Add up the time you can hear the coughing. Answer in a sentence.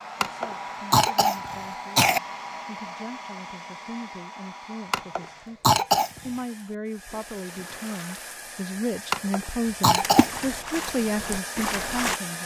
The coughing can be heard for 5 seconds in total.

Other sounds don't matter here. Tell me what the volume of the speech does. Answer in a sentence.
The loudness of the speech goes up.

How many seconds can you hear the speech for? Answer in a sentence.
The speech can be heard for 12 seconds in total.